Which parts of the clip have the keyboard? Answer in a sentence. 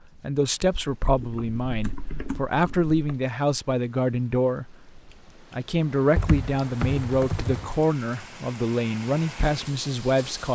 The keyboard can be heard from 1.1 to 3.2 s and from 6.2 to 7.7 s.